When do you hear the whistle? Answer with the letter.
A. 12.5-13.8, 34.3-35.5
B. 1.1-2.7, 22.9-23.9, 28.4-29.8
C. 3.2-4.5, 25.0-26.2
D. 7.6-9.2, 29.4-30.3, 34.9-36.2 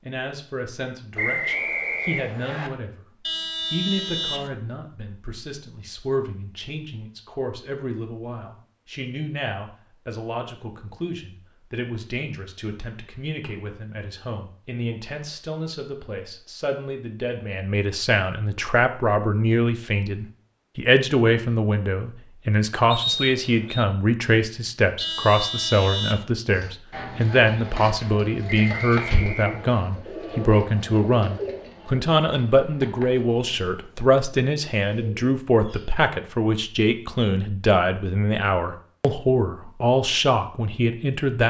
B.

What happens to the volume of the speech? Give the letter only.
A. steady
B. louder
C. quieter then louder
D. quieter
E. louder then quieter
B.